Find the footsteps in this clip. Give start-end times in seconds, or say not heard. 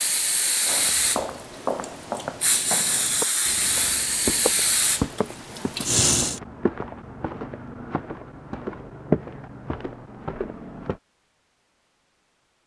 0.7-11.0.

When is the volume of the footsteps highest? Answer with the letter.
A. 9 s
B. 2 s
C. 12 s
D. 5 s
A.